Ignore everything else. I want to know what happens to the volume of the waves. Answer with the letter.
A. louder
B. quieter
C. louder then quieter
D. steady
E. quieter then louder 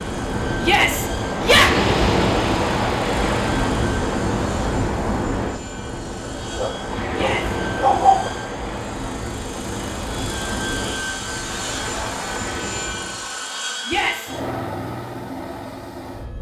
B.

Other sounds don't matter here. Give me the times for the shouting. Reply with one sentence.
You can hear the shouting from 0.6 to 1.7 s, from 7.1 to 7.5 s and from 13.8 to 14.3 s.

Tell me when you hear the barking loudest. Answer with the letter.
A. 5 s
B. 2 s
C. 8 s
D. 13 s
C.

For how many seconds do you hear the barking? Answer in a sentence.
You can hear the barking for 2 seconds altogether.